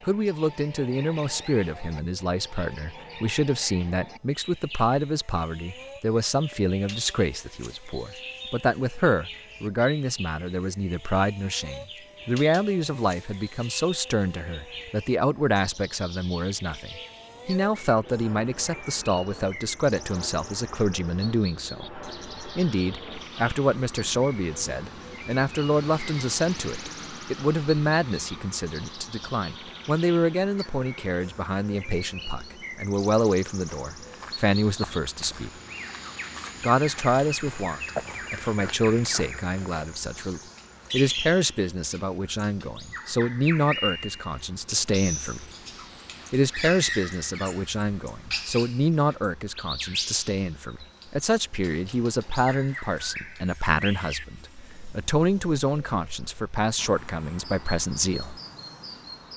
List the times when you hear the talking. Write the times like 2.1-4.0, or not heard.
0.0-35.5, 36.6-45.5, 46.3-58.4.